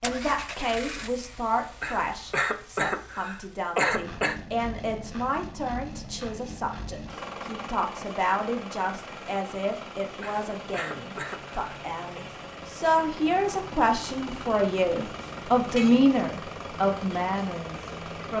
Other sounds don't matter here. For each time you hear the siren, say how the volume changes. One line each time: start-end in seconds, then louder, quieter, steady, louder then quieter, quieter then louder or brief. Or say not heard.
not heard.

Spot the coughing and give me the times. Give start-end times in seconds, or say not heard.
1.8-4.3, 10.2-12.2.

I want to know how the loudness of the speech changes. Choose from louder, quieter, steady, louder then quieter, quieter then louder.
louder.